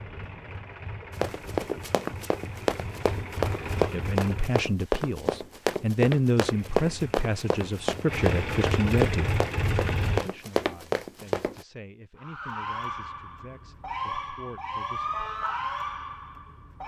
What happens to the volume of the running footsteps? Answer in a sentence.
The volume of the running footsteps stays about the same.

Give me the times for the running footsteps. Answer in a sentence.
You can hear the running footsteps from 1.1 to 11.7 s.